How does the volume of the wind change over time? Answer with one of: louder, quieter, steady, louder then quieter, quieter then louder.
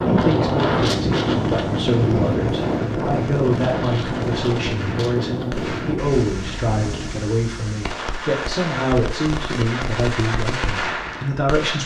quieter.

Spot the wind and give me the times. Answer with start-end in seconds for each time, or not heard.
0.0-7.2.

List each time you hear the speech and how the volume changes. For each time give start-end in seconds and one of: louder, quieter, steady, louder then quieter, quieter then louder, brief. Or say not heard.
0.0-11.8 steady.